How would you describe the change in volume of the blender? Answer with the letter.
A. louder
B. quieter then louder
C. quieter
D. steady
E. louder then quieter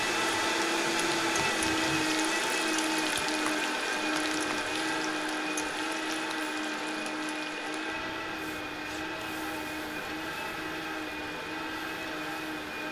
C.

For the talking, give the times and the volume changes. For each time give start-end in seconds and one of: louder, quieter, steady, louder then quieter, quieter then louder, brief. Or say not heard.
not heard.